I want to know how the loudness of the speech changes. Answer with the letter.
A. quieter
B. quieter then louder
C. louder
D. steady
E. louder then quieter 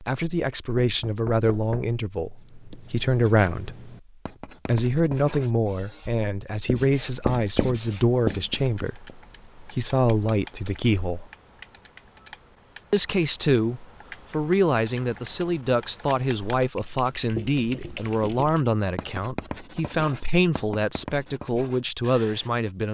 D.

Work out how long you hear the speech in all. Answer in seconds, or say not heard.
21 s.